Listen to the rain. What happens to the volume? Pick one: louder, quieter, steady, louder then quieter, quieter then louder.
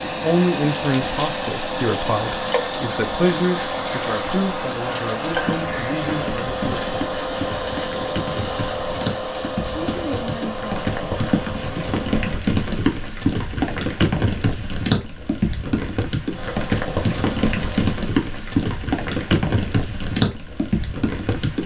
louder.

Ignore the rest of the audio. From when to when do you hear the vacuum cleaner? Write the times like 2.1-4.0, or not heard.
0.0-12.4, 16.3-17.9.